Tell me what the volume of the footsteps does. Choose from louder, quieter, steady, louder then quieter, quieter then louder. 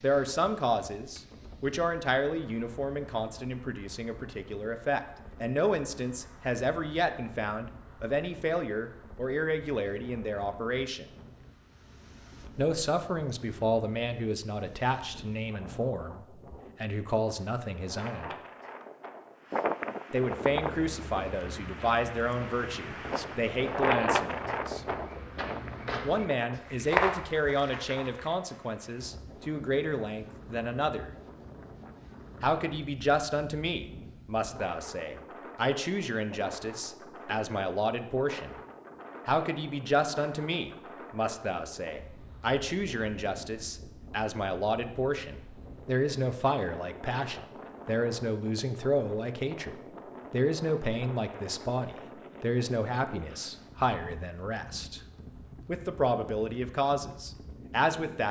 louder.